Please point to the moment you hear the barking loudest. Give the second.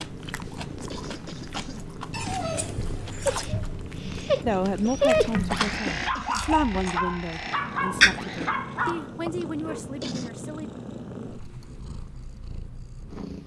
5 s.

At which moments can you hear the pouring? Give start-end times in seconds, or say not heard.
2.1-3.5.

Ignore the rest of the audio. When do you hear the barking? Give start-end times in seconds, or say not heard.
2.4-9.8.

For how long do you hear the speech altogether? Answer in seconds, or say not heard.
6 s.